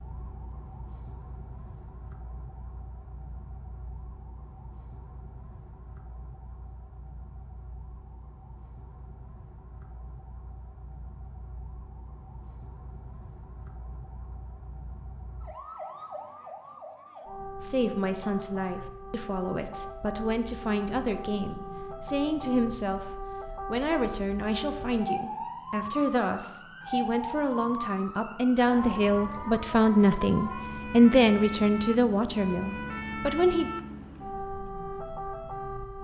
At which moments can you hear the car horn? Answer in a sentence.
The car horn can't be heard in this clip.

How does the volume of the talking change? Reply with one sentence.
The volume of the talking goes up.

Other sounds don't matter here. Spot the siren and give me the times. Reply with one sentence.
The siren can be heard from 0.0 to 35.9 s.